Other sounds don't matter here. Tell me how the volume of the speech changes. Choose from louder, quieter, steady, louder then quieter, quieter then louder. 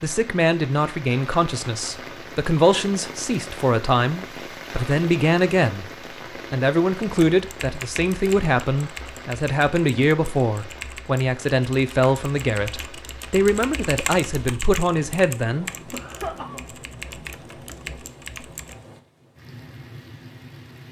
steady.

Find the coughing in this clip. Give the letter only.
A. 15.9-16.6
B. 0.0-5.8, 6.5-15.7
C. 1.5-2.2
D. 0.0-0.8
A.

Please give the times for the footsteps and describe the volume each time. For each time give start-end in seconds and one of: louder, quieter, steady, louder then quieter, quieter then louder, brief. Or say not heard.
not heard.